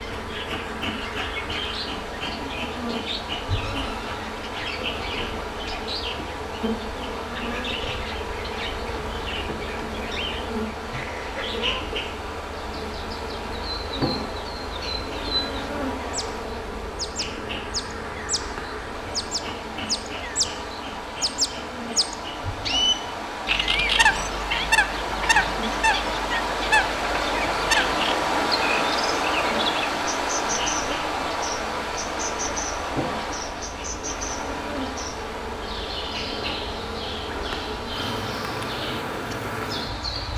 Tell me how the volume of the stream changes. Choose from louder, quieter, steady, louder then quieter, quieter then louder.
louder then quieter.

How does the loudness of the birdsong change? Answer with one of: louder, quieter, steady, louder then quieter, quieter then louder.
louder then quieter.